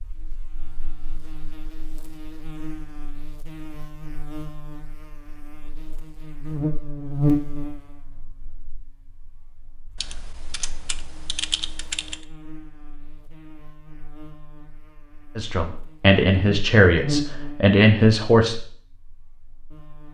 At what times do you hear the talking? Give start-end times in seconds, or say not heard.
15.3-18.6.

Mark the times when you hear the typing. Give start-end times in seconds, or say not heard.
9.9-12.2.